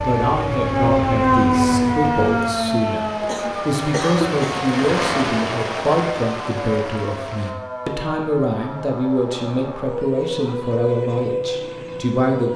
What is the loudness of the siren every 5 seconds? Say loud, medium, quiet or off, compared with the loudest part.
loud, medium, medium.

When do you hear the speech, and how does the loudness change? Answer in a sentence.
You can hear the speech from 0.0 to 12.5 s, at a steady volume.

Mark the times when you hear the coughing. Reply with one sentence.
You can hear the coughing from 3.2 to 4.7 s.